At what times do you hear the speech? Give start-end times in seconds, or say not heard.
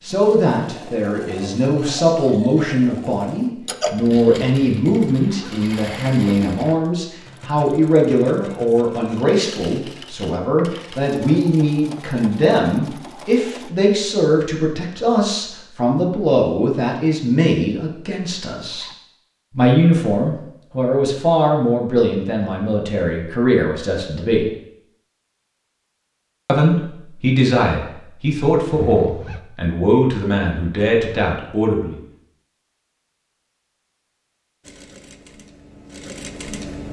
0.0-18.9, 19.6-24.5, 26.4-32.0.